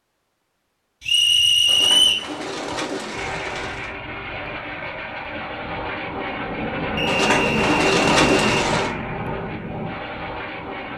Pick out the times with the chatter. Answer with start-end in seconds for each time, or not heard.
not heard.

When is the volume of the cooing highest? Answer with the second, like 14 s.
8 s.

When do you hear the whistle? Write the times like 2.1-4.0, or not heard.
1.1-2.3, 7.0-8.7.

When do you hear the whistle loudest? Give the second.
2 s.